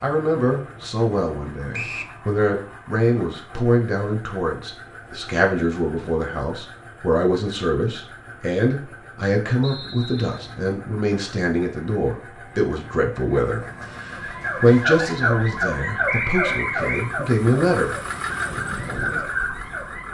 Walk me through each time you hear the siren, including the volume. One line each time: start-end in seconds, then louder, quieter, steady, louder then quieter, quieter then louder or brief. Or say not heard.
14.1-20.0 quieter then louder.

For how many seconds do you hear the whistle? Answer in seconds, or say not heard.
2 s.